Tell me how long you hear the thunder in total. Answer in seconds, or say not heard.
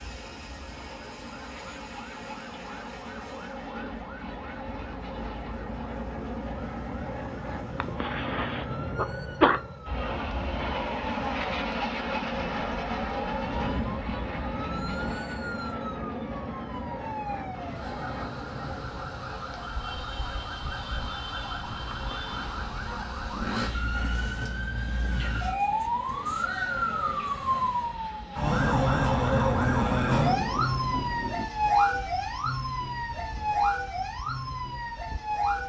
5 s.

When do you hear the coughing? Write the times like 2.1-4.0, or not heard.
7.8-9.6, 21.9-22.4.